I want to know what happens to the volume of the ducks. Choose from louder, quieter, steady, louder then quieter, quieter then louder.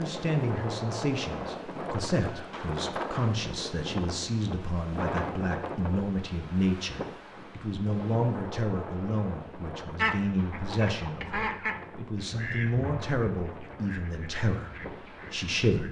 louder then quieter.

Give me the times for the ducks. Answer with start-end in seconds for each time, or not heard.
9.9-15.6.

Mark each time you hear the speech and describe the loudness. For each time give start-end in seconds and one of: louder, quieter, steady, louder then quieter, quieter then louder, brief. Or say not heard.
0.0-15.8 steady.